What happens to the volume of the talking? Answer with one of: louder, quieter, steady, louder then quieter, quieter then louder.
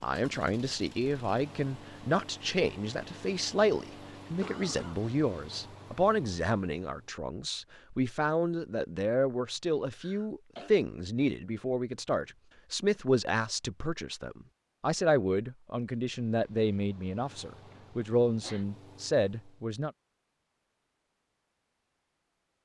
steady.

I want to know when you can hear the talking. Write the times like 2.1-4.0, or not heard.
0.0-19.9.